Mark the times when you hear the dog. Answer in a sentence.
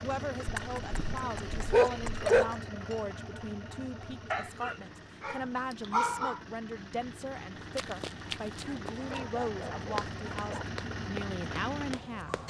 You can hear the dog from 0.5 to 2.5 s, from 4.3 to 6.4 s and from 8.6 to 10.7 s.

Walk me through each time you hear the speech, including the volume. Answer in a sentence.
You can hear the speech from 0.0 to 12.3 s, at a steady volume.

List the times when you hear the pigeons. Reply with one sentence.
The pigeons can't be heard in this clip.